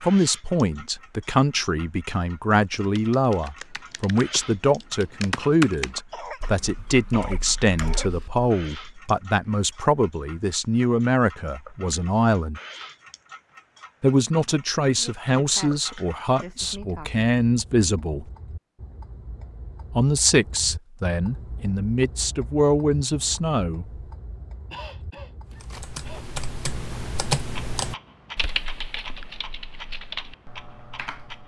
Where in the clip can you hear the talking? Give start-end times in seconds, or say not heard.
0.0-12.6, 14.0-18.2, 19.9-23.9.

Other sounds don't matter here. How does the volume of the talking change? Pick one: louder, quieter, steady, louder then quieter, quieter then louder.
steady.